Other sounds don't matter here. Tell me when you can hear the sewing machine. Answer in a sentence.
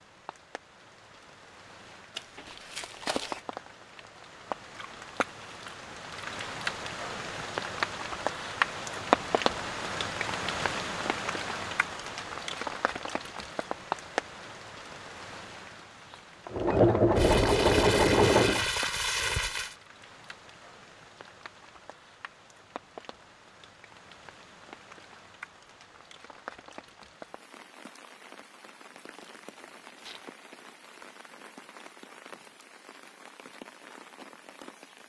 The sewing machine can be heard from 16.5 to 18.6 s.